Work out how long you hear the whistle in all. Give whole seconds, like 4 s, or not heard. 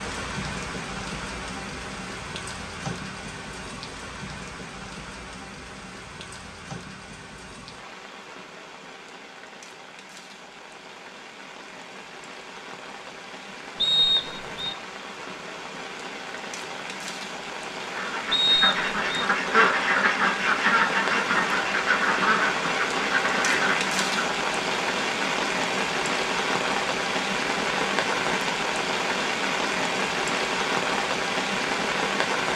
2 s.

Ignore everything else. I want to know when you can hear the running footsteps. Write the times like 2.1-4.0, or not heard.
not heard.